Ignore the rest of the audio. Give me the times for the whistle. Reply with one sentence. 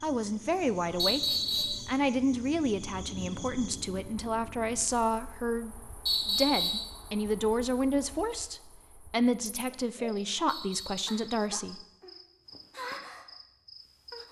The whistle can be heard from 0.9 to 1.9 s, from 6.0 to 6.9 s and from 10.4 to 11.1 s.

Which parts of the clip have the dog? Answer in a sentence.
The dog can't be heard in this clip.